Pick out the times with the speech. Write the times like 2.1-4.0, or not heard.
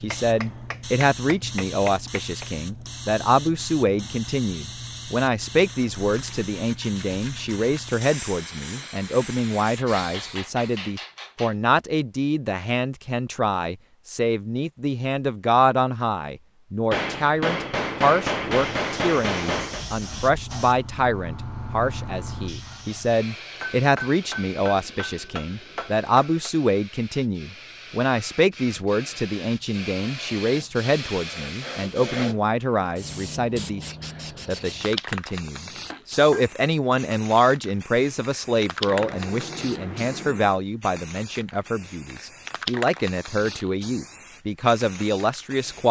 0.0-33.8, 34.5-45.8.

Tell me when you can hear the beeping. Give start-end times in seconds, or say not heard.
not heard.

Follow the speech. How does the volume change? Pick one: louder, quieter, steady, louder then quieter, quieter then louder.
steady.